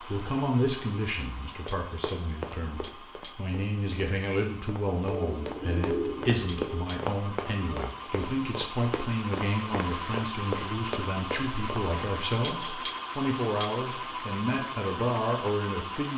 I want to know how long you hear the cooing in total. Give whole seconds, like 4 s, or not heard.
2 s.